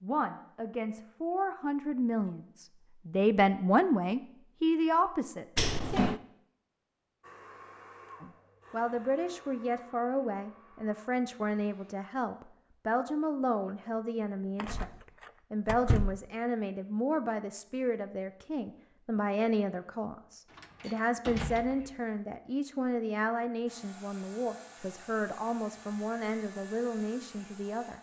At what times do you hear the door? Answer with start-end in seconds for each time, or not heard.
5.5-6.2, 14.6-16.1, 20.5-21.9.